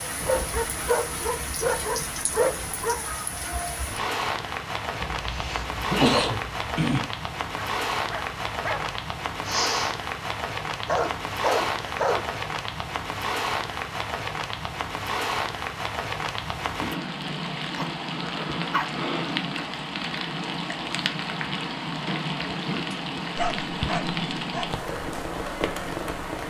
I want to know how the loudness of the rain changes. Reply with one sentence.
The volume of the rain stays about the same.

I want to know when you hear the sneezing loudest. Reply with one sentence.
The volume of the sneezing peaks at 6 seconds.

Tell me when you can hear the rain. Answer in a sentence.
The rain can be heard from 0.0 to 26.4 s.